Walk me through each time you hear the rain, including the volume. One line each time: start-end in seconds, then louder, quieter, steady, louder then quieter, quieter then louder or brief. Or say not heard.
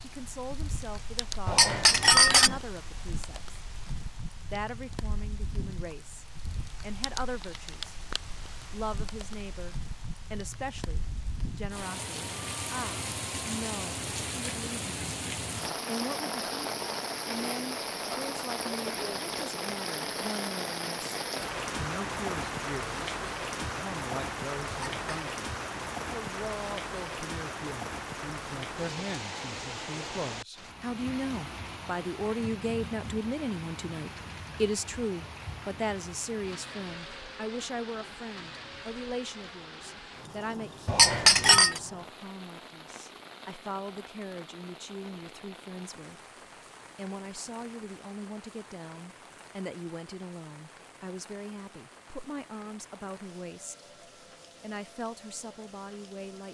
0.0-56.5 louder then quieter.